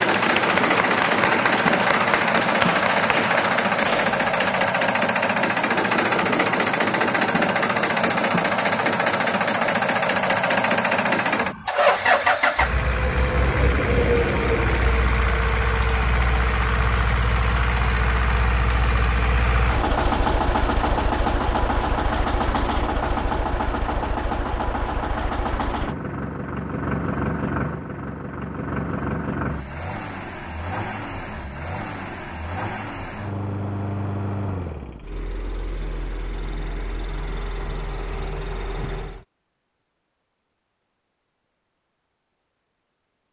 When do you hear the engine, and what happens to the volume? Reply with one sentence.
The engine can be heard from 0.0 to 39.2 s, getting quieter.